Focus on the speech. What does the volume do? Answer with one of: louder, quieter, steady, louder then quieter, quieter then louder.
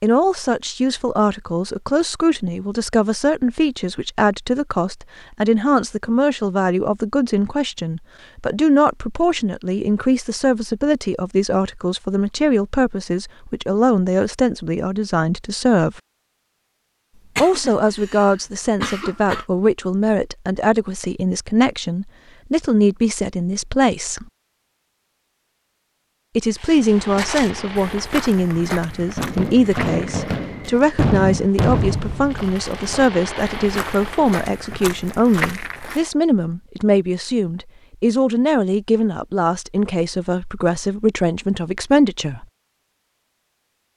steady.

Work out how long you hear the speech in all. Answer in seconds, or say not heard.
39 s.